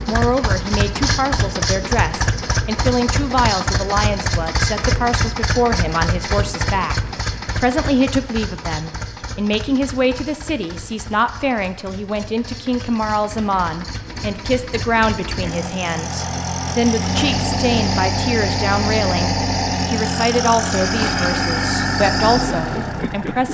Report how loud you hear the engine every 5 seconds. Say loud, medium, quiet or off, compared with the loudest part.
loud, medium, quiet, loud, loud.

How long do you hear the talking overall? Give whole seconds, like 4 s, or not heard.
23 s.